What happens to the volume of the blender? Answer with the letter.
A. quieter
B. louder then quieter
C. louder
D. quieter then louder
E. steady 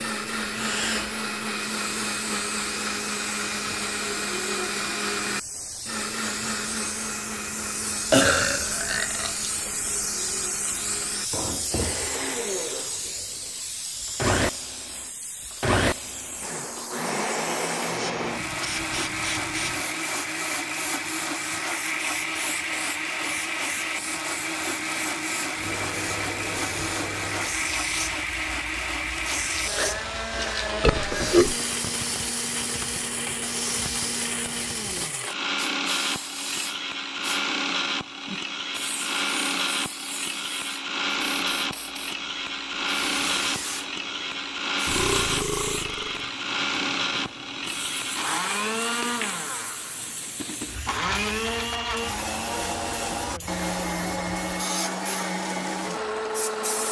E.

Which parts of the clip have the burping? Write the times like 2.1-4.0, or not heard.
8.1-9.3, 30.8-31.6, 44.9-46.3.